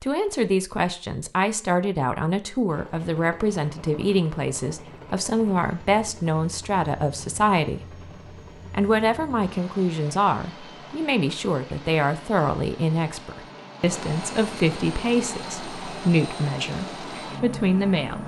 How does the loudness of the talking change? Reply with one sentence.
The volume of the talking stays about the same.